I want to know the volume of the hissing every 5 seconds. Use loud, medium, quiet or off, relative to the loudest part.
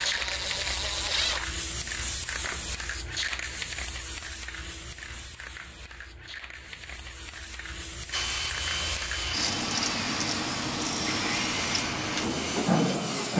medium, medium, loud.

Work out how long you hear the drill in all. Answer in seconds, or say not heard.
8 s.